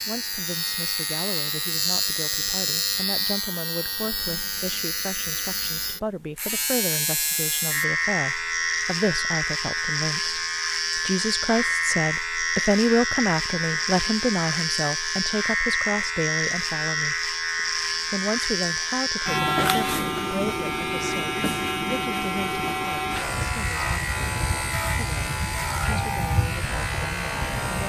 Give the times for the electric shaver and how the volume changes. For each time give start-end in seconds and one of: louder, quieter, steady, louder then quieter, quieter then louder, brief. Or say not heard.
0.0-27.8 steady.